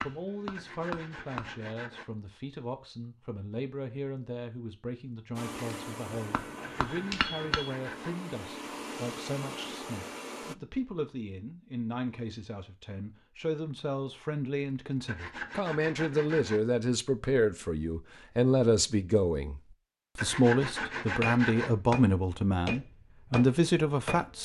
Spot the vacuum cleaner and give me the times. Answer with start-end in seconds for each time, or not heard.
5.3-10.6.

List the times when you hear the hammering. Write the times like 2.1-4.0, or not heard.
0.0-1.6, 6.0-7.8, 21.2-24.4.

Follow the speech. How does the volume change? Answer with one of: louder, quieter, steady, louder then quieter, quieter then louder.
louder.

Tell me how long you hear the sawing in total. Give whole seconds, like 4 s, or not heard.
6 s.